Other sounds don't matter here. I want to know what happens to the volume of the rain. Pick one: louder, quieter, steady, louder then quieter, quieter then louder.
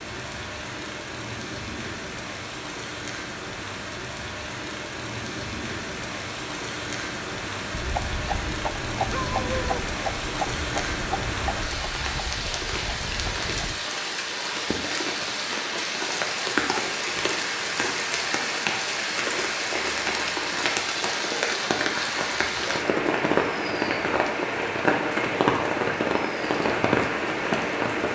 louder.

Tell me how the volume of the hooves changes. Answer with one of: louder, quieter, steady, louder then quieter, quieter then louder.
quieter.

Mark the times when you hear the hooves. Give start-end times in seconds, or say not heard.
7.8-13.8.